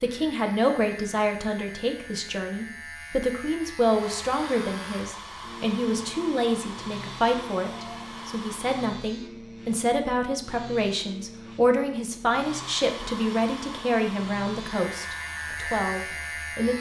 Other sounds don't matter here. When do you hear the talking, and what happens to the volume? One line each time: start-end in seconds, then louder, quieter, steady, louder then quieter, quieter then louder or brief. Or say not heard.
0.0-16.7 steady.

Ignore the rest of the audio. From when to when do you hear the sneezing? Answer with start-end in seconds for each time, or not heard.
not heard.